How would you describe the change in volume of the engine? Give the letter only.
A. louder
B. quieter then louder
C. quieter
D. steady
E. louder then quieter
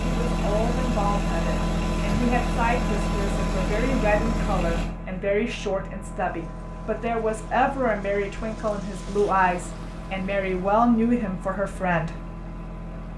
C.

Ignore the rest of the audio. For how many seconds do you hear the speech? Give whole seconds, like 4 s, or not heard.
12 s.